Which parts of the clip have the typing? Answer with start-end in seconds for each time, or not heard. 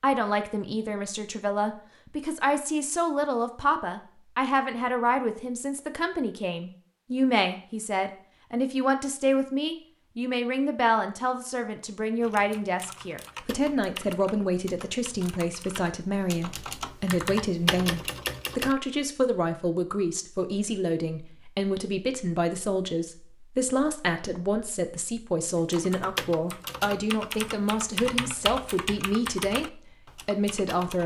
12.2-18.8, 25.6-31.0.